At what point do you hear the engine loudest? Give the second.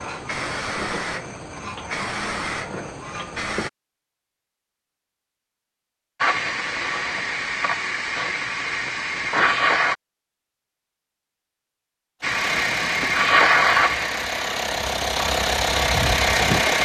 16 s.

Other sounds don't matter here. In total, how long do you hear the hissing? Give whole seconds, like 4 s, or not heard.
12 s.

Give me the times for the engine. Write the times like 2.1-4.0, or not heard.
12.2-16.8.